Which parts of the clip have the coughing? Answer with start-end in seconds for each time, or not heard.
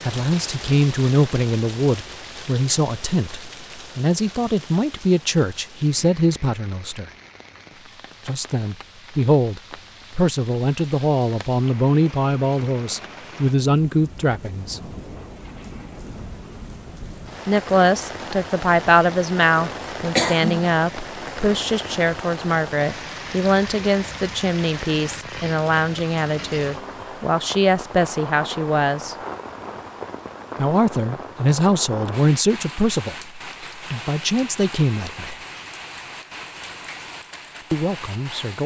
20.1-20.7.